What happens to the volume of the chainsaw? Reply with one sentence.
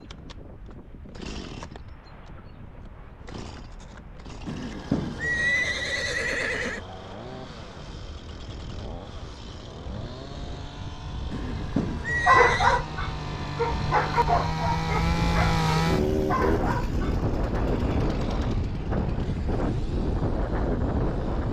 The volume of the chainsaw goes up, then down.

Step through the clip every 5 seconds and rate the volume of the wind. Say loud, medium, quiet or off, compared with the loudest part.
quiet, quiet, medium, loud, loud.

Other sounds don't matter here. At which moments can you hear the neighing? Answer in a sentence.
The neighing can be heard from 4.5 to 6.8 s and from 11.3 to 12.8 s.